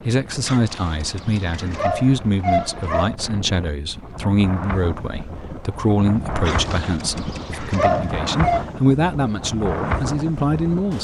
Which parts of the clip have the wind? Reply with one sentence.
You can hear the wind from 0.0 to 10.9 s.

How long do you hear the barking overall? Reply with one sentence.
You can hear the barking for 5 seconds altogether.